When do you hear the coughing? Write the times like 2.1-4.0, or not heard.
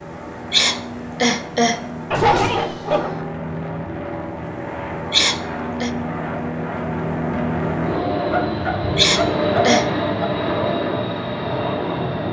0.5-1.9, 5.1-5.9, 8.9-9.9.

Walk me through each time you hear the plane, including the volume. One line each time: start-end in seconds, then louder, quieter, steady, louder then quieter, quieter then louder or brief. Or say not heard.
0.0-12.2 louder.